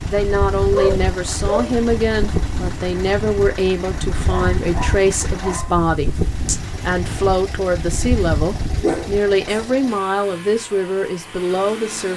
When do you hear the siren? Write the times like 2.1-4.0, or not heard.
not heard.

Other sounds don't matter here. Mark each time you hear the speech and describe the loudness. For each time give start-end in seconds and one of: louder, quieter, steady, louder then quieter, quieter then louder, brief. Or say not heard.
0.1-12.1 steady.